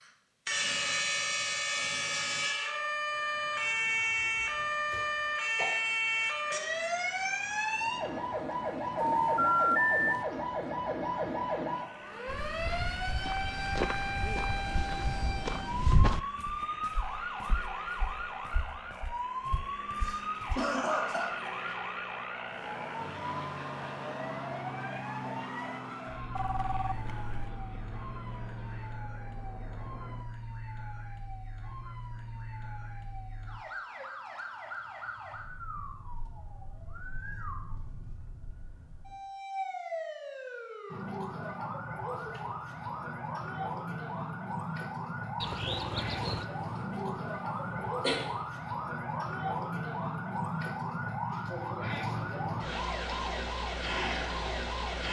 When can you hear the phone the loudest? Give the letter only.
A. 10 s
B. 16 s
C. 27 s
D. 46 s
A.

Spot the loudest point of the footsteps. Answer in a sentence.
The loudest moment of the footsteps is at 16 seconds.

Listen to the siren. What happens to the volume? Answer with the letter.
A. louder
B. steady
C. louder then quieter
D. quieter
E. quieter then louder
E.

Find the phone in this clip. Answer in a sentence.
You can hear the phone from 9.0 to 10.2 s, from 26.4 to 27.5 s and from 45.4 to 46.5 s.